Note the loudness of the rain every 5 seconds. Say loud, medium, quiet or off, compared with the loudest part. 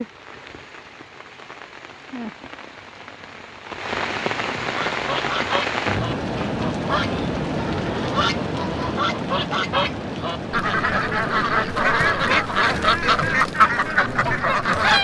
medium, loud, medium.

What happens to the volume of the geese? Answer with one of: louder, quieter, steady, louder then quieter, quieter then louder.
louder.